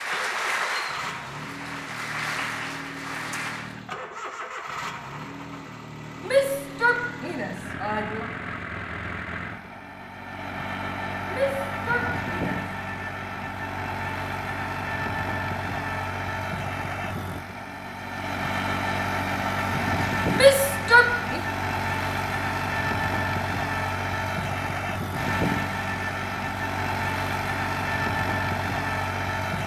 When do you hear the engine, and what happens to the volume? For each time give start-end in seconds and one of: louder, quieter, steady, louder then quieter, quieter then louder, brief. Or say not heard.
0.0-29.6 louder.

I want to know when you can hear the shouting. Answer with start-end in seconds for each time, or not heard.
6.2-8.2, 11.3-12.6, 20.3-21.4.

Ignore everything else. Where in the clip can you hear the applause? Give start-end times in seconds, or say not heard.
0.0-3.8.